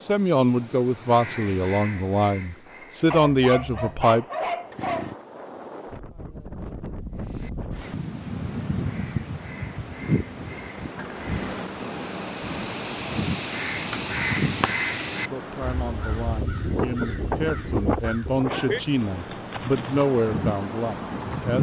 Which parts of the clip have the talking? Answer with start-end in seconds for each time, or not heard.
0.1-4.2, 15.2-21.5.